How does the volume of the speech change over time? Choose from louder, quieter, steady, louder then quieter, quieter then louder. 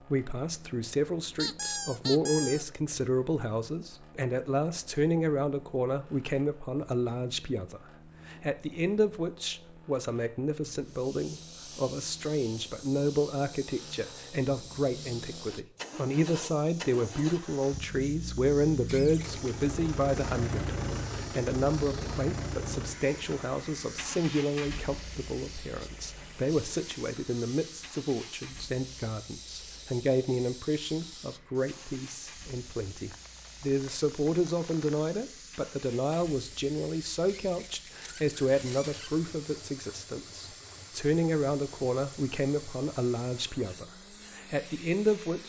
steady.